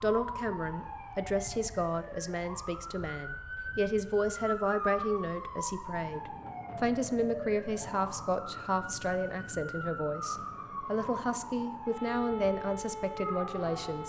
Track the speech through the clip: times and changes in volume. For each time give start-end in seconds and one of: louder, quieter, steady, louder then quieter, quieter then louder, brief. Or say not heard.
0.0-14.0 steady.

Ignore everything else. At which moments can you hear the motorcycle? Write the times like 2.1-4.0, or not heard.
not heard.